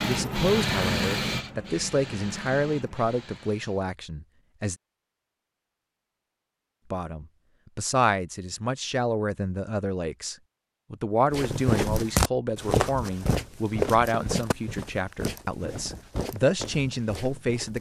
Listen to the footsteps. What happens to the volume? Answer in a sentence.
The loudness of the footsteps goes down.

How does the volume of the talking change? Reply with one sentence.
The loudness of the talking stays about the same.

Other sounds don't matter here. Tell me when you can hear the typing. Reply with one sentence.
The typing can't be heard in this clip.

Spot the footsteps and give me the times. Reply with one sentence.
The footsteps can be heard from 11.3 to 17.7 s.